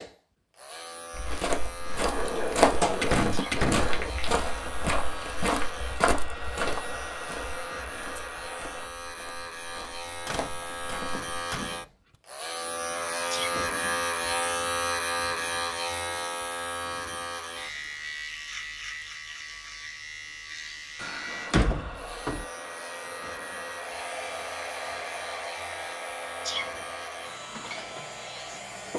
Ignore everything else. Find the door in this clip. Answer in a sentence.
You can hear the door from 2.1 to 4.1 s, from 10.2 to 12.2 s and from 21.0 to 22.4 s.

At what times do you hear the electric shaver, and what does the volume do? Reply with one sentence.
You can hear the electric shaver from 0.0 to 28.9 s, getting louder then quieter.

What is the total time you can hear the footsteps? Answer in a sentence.
The footsteps can be heard for 10 seconds in total.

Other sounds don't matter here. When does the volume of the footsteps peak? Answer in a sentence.
The loudest moment of the footsteps is at 3 seconds.